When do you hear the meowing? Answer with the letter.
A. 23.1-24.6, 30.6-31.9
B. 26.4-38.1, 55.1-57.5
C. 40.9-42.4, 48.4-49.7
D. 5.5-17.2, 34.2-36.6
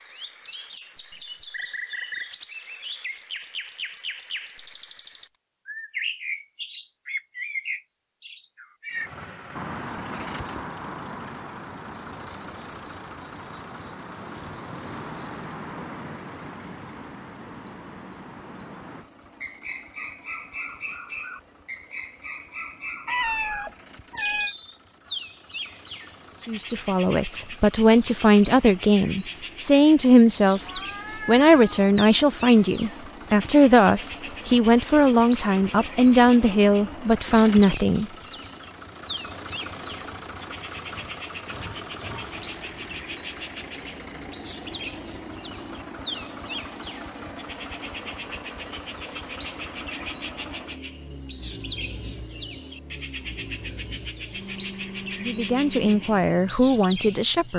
A.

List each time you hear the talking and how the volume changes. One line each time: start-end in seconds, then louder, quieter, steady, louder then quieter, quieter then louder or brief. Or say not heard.
26.4-38.1 steady
55.1-57.5 brief.